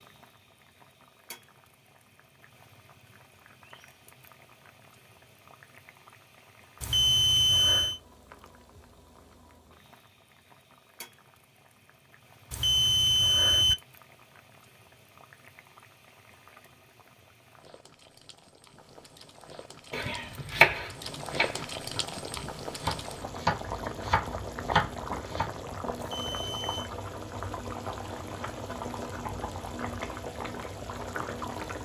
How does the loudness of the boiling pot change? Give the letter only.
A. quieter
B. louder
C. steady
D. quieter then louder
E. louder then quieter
B.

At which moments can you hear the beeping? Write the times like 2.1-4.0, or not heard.
6.8-8.0, 12.5-13.8, 25.9-26.9.